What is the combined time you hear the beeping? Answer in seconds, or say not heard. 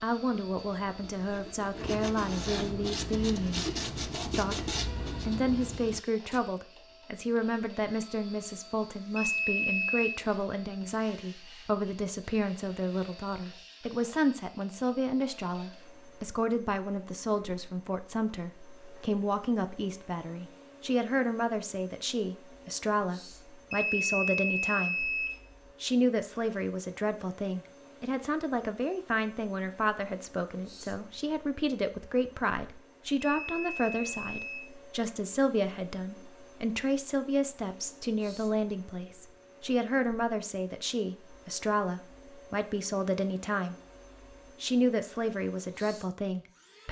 4 s.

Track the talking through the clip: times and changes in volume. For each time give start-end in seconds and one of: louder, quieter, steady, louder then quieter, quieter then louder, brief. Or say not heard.
0.0-24.9 steady
25.8-43.8 steady
44.6-46.8 brief.